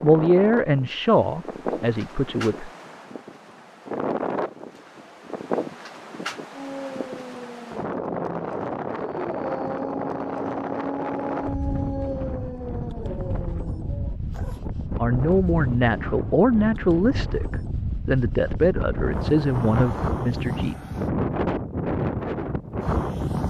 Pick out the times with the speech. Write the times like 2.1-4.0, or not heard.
0.0-2.7, 15.0-20.8.